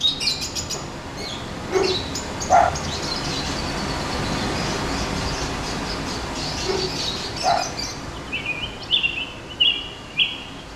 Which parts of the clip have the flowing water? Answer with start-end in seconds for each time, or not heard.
0.0-10.7.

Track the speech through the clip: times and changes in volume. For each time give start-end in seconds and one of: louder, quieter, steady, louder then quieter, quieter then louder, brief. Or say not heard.
not heard.